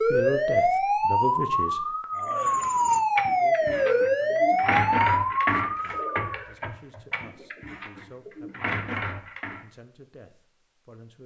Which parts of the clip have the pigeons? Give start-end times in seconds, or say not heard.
2.1-9.6.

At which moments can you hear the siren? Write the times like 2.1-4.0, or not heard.
0.0-6.3.